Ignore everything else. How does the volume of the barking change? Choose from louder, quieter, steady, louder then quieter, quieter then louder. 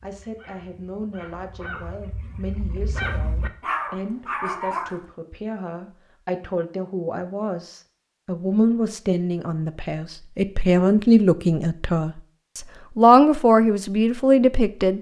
louder.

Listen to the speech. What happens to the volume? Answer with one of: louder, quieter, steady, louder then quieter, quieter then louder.
louder.